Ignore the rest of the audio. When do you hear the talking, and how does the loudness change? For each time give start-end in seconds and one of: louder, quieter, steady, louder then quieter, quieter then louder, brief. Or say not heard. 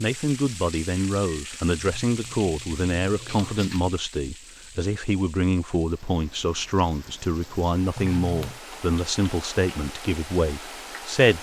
0.0-11.3 steady.